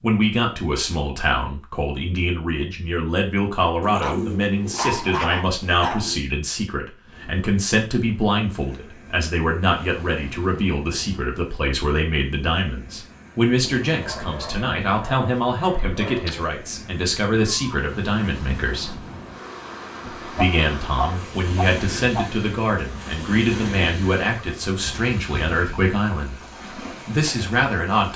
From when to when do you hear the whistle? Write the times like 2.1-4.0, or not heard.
not heard.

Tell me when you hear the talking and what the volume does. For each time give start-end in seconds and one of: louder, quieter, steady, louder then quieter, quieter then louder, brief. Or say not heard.
0.0-19.0 steady
20.3-28.1 steady.